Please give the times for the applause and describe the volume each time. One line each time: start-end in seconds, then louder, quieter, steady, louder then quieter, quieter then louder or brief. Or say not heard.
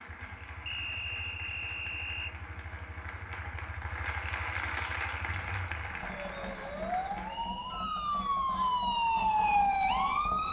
0.0-7.5 louder then quieter.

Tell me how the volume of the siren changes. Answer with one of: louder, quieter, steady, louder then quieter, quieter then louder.
louder.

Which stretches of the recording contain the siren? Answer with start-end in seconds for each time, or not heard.
6.0-10.4.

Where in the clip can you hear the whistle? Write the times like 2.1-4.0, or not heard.
0.7-2.4, 7.2-8.0.